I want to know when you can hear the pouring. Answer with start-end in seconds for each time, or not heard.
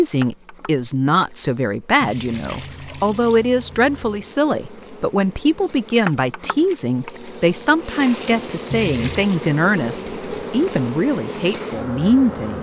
2.0-4.2, 8.7-9.3.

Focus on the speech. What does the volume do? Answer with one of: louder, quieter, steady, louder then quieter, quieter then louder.
steady.